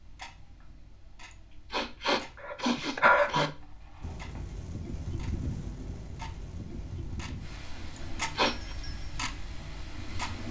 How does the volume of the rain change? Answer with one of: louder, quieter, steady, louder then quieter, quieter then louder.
quieter.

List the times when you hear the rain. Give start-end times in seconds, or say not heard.
4.0-10.4.